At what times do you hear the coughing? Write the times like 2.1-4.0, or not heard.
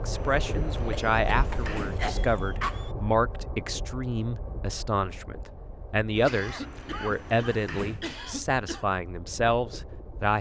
0.9-2.9, 6.2-8.8.